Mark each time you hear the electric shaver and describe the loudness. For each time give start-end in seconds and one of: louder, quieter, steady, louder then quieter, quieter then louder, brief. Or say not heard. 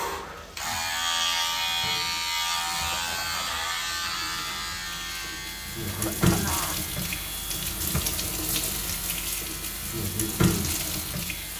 0.0-11.5 quieter.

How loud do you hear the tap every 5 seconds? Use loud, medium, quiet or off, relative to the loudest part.
quiet, loud, loud.